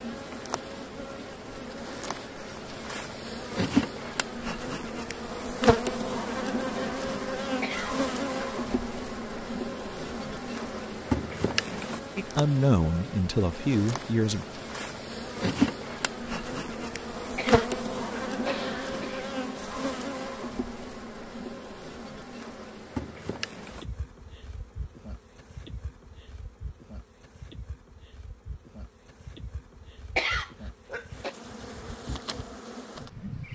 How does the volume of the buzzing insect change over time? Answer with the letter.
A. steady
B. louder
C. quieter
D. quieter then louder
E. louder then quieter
C.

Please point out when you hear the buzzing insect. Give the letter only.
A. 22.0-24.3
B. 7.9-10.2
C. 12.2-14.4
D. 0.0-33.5
D.